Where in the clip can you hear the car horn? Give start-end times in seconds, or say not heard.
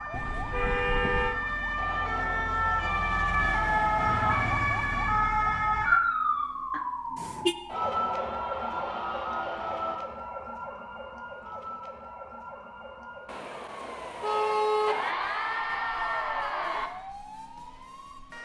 0.1-1.4, 6.7-7.5, 13.2-15.2.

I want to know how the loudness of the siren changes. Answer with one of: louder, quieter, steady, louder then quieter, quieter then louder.
quieter.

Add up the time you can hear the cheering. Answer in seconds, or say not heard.
7 s.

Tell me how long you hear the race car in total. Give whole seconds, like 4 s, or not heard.
not heard.